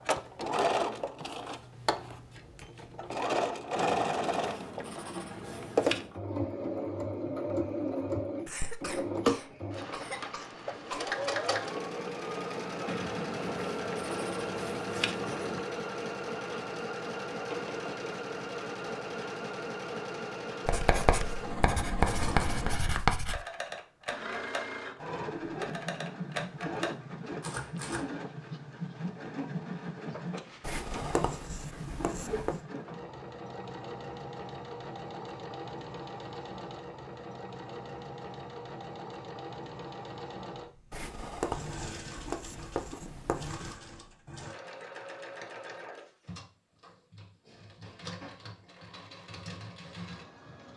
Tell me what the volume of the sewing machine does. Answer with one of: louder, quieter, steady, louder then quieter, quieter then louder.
quieter.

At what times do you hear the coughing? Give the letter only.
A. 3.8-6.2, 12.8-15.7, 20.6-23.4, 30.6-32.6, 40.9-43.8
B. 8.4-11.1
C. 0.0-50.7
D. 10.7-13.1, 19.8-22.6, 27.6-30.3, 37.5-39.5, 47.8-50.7
B.